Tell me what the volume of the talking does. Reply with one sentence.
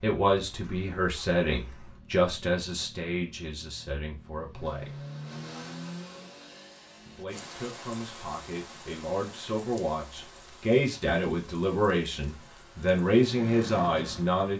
The volume of the talking goes down, then up.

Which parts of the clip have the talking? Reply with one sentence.
You can hear the talking from 0.0 to 5.0 s and from 7.0 to 14.5 s.